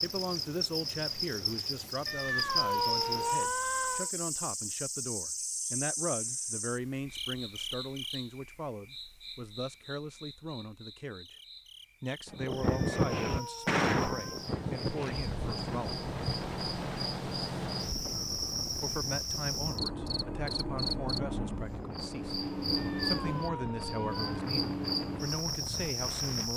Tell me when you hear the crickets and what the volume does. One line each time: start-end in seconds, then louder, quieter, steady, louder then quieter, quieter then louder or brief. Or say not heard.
0.0-26.5 quieter then louder.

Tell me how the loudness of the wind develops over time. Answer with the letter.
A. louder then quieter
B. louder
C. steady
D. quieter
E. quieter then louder
D.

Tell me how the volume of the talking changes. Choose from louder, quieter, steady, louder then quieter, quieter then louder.
steady.